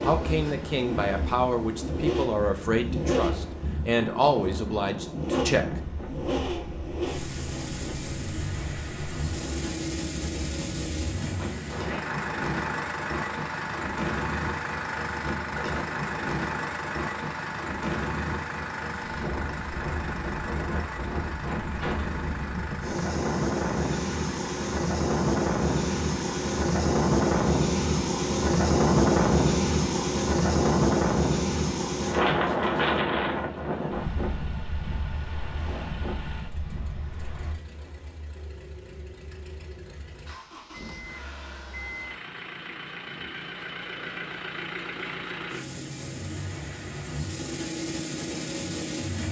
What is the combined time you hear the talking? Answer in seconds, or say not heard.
6 s.